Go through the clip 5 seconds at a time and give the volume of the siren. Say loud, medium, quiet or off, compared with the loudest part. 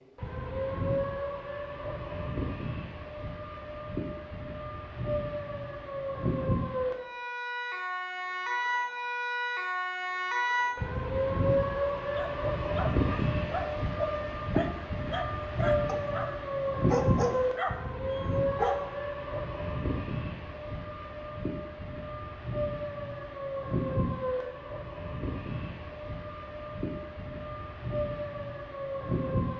medium, loud, loud, loud, medium, medium.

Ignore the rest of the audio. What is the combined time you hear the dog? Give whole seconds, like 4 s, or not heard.
7 s.